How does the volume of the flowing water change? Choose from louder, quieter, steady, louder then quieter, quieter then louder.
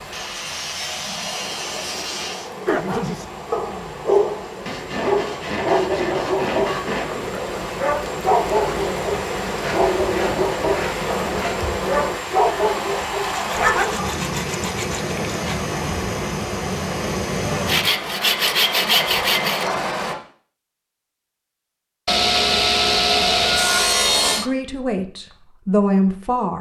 louder.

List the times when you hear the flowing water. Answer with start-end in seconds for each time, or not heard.
0.0-20.1.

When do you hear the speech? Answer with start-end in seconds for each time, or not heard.
24.4-26.5.